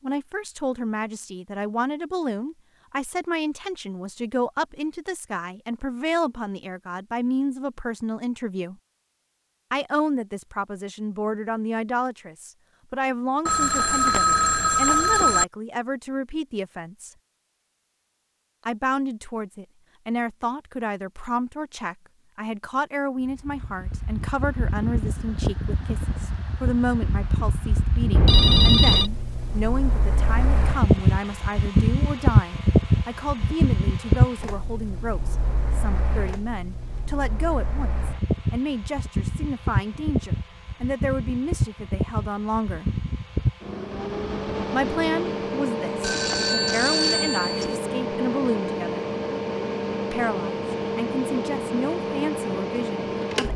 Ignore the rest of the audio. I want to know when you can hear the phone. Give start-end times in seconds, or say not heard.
13.4-15.4, 28.1-29.1, 46.0-47.8.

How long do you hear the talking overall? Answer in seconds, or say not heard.
48 s.